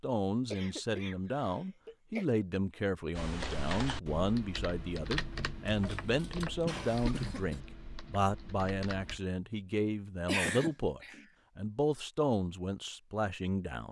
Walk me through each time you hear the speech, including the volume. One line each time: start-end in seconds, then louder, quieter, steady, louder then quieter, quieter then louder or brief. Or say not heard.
0.0-13.8 steady.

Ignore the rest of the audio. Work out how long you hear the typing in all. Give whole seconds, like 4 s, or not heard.
6 s.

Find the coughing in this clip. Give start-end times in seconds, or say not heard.
0.5-2.2, 5.7-7.6, 10.2-11.2.